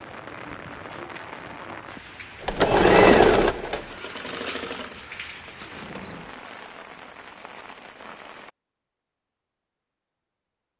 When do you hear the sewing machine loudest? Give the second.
3 s.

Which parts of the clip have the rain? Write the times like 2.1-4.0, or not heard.
0.0-8.5.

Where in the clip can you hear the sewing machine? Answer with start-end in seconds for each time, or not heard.
2.4-6.4.